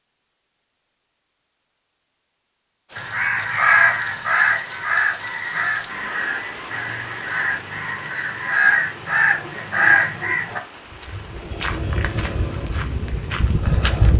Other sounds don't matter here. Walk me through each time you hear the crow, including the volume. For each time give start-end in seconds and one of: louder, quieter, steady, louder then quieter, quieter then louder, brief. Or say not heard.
3.0-10.6 quieter then louder.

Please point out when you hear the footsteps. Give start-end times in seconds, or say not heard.
10.8-14.1.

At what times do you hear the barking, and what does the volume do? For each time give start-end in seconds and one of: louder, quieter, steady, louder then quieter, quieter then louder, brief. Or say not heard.
not heard.